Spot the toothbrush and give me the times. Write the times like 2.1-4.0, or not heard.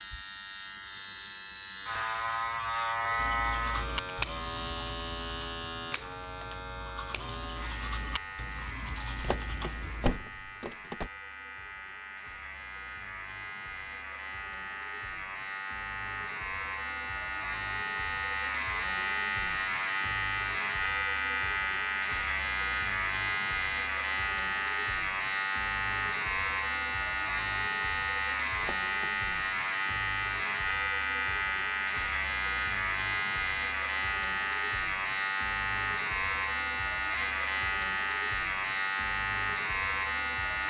3.1-10.2.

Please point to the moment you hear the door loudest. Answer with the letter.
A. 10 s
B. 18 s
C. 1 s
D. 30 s
A.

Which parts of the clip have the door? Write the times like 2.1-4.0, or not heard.
9.2-11.1, 28.6-29.2.